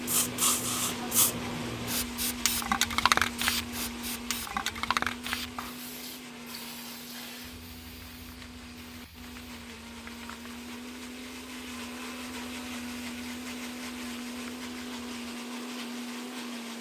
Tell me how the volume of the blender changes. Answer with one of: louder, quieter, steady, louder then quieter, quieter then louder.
quieter then louder.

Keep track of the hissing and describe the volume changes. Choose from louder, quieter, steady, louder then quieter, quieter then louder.
quieter.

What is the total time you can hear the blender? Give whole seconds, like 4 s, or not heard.
17 s.